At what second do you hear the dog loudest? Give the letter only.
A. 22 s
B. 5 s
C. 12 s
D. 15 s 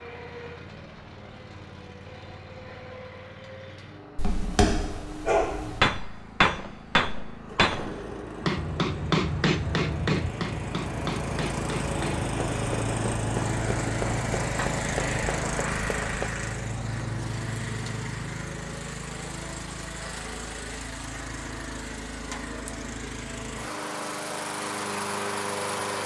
B.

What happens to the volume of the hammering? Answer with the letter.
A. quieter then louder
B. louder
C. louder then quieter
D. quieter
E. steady
D.